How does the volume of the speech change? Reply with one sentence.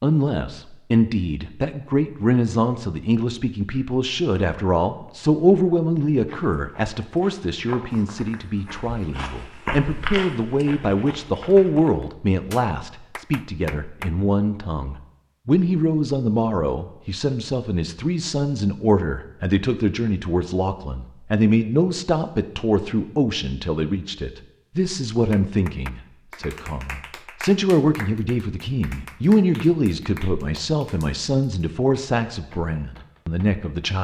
The volume of the speech stays about the same.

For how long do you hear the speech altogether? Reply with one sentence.
The speech can be heard for 34 seconds in total.